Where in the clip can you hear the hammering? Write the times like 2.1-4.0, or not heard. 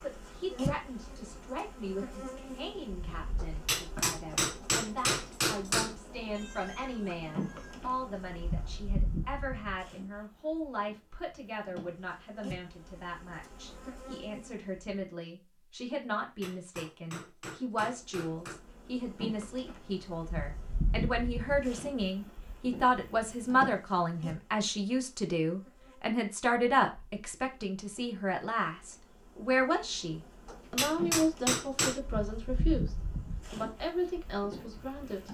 3.4-6.0, 16.1-18.6, 30.4-32.0.